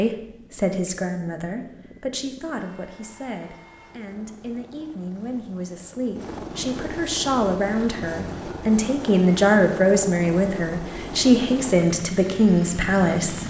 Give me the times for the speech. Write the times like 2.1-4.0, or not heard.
0.0-13.4.